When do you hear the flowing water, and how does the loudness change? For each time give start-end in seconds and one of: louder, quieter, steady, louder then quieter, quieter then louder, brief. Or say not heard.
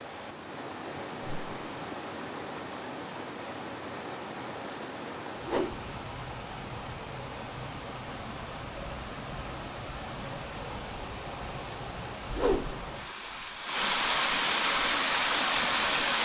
0.0-16.2 louder.